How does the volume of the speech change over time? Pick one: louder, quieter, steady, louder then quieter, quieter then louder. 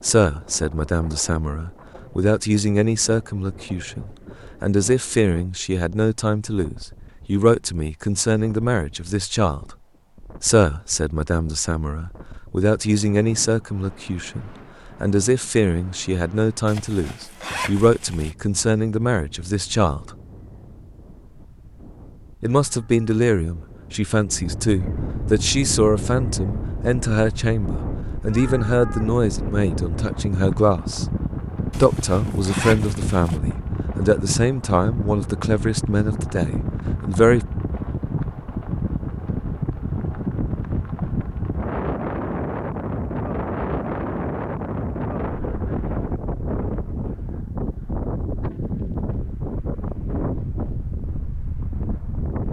steady.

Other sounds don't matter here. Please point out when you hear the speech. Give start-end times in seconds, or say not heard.
0.0-9.7, 10.4-20.1, 22.4-31.1, 31.8-37.5.